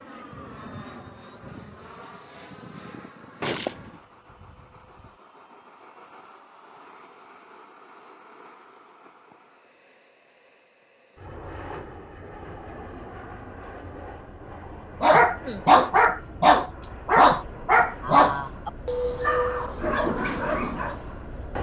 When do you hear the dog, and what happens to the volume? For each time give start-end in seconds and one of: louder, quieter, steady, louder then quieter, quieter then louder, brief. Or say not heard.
15.0-20.9 quieter.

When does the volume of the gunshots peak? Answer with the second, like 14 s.
4 s.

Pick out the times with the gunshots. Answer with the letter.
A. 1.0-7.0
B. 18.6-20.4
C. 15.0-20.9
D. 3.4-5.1
D.